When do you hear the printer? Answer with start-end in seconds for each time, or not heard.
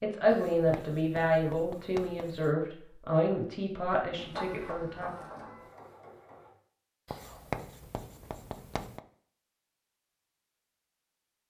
4.2-6.5.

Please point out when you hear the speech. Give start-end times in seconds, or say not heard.
0.0-5.1.